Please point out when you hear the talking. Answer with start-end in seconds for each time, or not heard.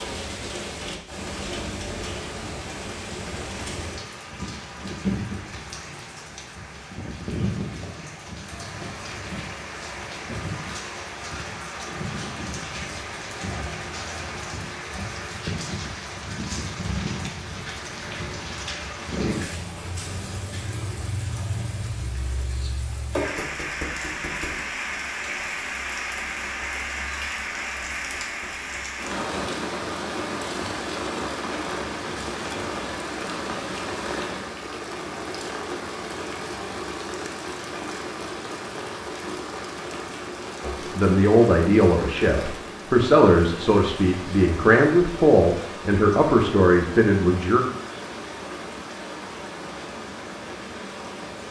40.6-47.6.